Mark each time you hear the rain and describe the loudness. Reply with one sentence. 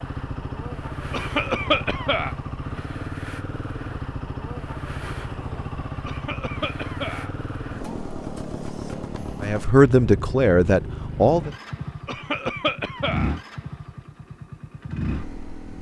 You can't hear the rain here.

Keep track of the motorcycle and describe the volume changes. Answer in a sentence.
The volume of the motorcycle stays about the same.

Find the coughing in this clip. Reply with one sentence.
The coughing can be heard from 1.1 to 2.4 s, from 6.0 to 7.3 s and from 12.1 to 13.3 s.